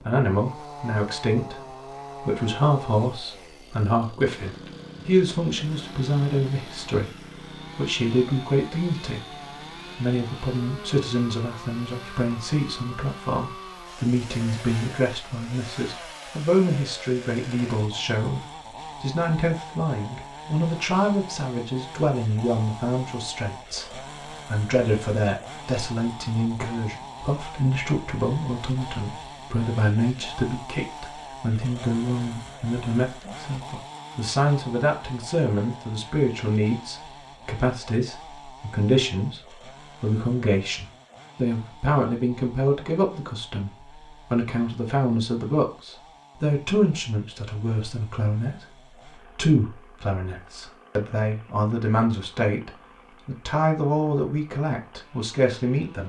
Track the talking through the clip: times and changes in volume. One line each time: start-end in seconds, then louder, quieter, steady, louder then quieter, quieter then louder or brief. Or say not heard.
0.0-56.0 steady.